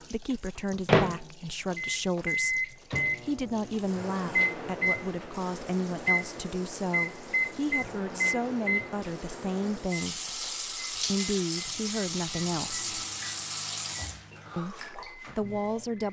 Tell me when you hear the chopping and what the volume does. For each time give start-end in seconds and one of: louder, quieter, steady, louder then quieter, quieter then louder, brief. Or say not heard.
not heard.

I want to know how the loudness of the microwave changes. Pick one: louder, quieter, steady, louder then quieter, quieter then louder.
quieter.